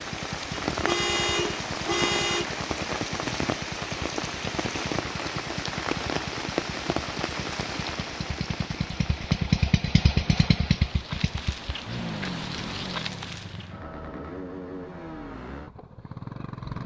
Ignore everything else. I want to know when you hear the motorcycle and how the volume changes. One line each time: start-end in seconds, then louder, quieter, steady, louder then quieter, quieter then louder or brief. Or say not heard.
0.0-16.8 louder then quieter.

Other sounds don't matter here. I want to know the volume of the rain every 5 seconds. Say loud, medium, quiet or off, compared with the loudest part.
loud, loud, medium, off.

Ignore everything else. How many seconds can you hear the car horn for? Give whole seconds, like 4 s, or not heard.
2 s.